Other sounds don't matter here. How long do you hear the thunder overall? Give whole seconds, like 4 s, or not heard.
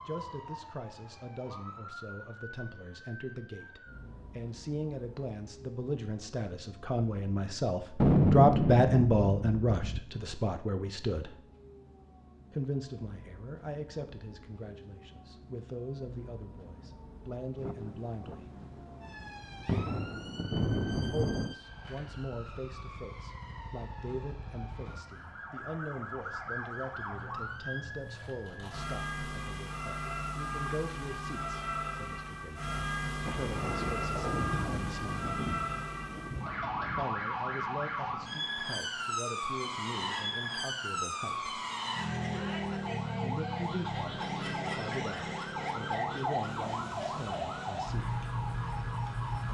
9 s.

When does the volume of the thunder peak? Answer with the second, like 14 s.
8 s.